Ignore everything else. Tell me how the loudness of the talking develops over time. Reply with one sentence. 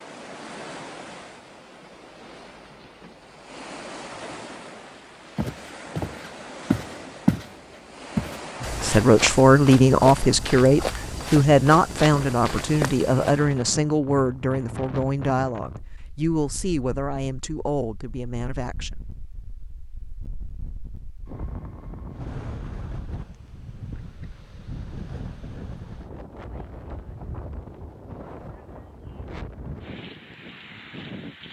The loudness of the talking goes down.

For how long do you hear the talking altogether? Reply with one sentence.
You can hear the talking for 10 seconds altogether.